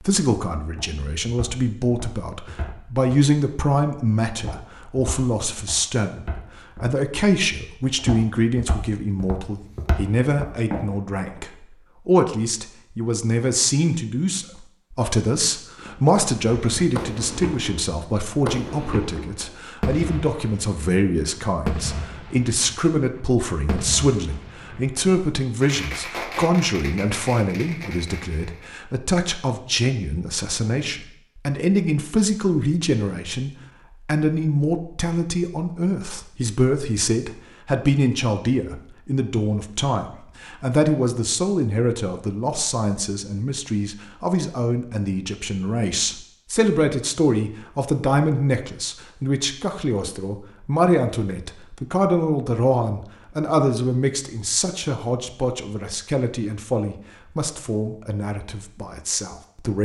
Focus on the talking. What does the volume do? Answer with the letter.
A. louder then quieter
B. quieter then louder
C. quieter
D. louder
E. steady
E.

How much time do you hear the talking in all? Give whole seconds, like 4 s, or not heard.
60 s.